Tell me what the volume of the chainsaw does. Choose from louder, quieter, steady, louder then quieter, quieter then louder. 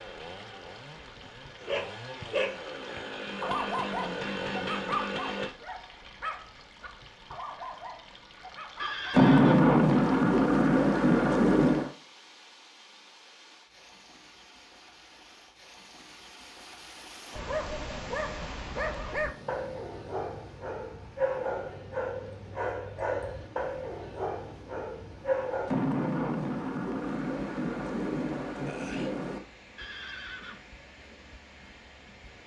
louder.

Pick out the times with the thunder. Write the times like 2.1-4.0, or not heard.
9.1-11.9, 25.6-29.4.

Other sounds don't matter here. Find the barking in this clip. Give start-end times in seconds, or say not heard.
1.1-9.2, 17.4-25.7.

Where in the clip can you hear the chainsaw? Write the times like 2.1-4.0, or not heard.
0.0-5.5.